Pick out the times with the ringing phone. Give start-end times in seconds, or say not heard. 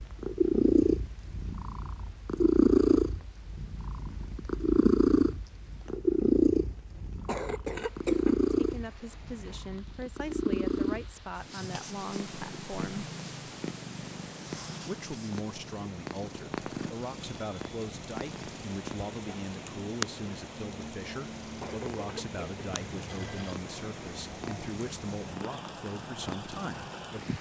22.6-23.6.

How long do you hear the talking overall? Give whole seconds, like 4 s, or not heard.
17 s.